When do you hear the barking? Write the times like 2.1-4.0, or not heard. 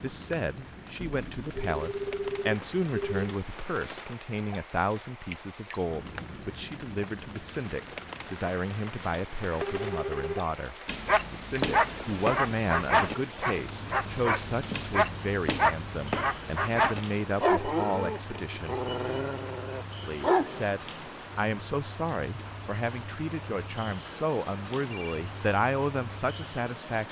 10.8-20.6.